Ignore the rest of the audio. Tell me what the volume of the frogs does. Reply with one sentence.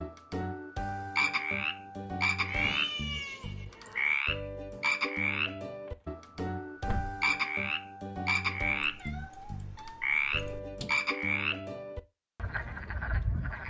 The volume of the frogs stays about the same.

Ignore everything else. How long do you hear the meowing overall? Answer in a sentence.
You can hear the meowing for 4 seconds altogether.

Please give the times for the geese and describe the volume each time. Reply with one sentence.
The geese can't be heard in this clip.